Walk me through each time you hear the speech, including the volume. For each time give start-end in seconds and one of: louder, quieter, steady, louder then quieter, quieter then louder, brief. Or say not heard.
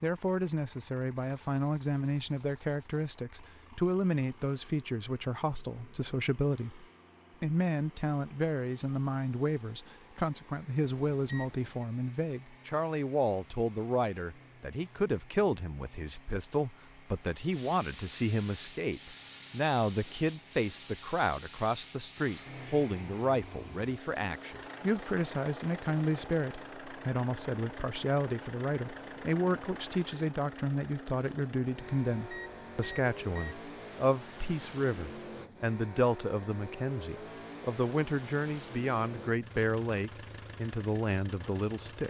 0.0-42.0 steady.